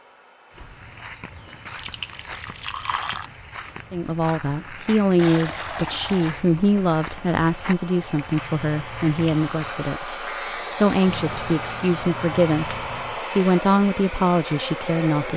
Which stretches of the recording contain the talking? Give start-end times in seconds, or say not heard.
3.9-15.3.